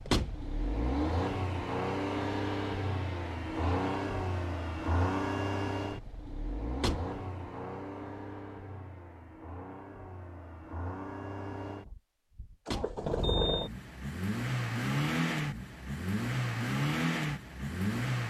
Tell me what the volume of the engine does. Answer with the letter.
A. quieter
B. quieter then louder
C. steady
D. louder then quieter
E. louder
B.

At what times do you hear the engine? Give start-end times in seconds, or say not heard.
0.0-18.2.